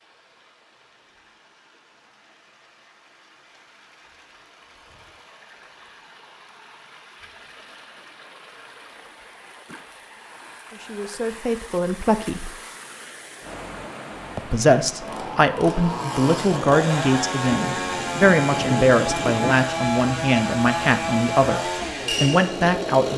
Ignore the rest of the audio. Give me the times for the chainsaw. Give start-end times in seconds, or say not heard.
14.9-23.1.